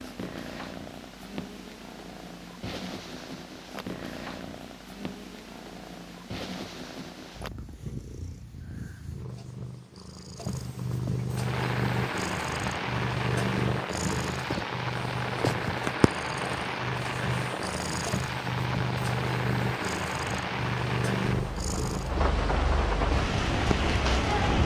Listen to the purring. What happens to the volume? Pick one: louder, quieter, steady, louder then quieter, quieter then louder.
louder.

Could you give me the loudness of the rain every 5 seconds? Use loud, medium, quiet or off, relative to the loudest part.
off, off, loud, loud, loud.